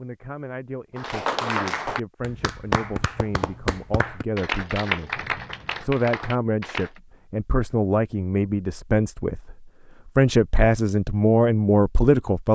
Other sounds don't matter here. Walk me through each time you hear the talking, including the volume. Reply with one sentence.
You can hear the talking from 0.0 to 12.5 s, getting louder.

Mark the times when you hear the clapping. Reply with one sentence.
The clapping can be heard from 0.9 to 6.9 s.